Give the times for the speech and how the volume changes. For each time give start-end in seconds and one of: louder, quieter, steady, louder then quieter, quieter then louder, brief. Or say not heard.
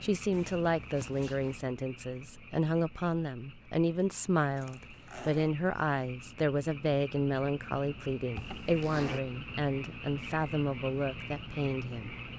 0.0-12.2 steady.